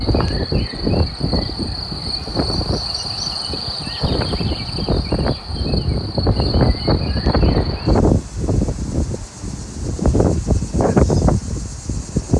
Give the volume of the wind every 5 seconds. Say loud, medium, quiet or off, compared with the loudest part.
medium, loud, loud.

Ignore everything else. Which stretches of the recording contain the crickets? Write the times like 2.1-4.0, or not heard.
0.0-12.3.